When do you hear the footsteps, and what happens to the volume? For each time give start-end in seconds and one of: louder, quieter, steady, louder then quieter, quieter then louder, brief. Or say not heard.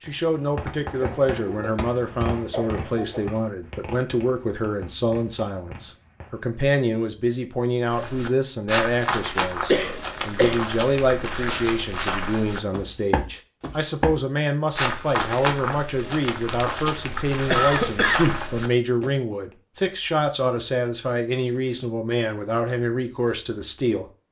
7.8-19.1 steady.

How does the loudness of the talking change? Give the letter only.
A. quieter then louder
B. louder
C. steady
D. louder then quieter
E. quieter
C.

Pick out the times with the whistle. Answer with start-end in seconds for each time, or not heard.
not heard.